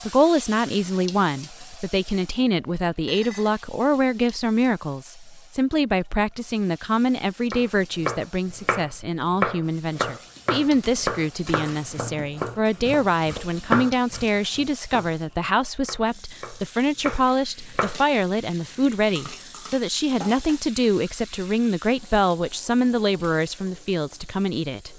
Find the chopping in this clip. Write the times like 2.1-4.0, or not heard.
7.5-18.0.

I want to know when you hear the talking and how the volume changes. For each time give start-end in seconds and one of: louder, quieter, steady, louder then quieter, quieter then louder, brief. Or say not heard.
0.1-24.9 steady.